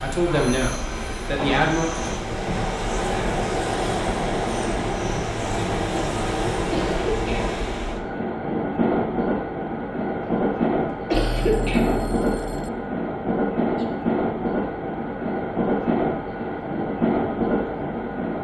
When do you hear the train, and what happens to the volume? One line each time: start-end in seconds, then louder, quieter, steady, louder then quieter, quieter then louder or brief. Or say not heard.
0.0-18.3 steady.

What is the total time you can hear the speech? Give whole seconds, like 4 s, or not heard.
2 s.